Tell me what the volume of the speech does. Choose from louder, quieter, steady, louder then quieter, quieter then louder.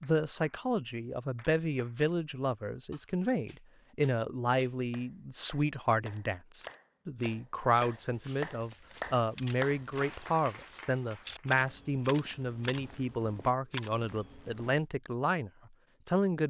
steady.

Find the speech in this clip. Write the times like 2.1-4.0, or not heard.
0.0-16.4.